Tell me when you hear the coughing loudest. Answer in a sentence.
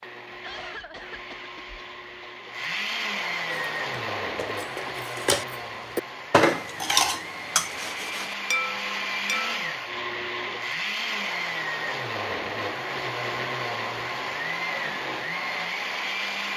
The volume of the coughing peaks at 1 second.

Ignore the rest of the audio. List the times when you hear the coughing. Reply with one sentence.
You can hear the coughing from 0.3 to 2.3 s.